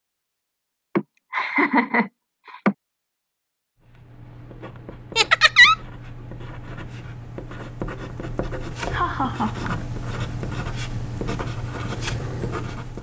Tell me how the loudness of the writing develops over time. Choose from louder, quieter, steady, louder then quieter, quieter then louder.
louder.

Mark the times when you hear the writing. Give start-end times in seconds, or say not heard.
3.8-12.9.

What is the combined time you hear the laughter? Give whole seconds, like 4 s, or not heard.
3 s.